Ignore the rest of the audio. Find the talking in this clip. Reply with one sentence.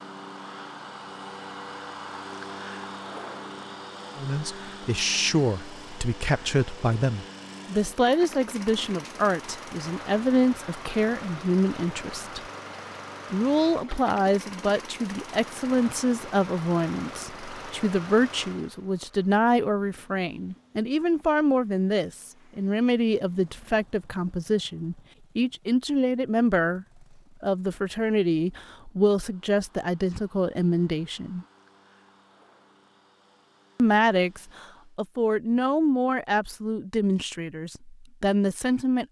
The talking can be heard from 4.2 to 12.4 s, from 13.3 to 31.4 s and from 33.8 to 39.0 s.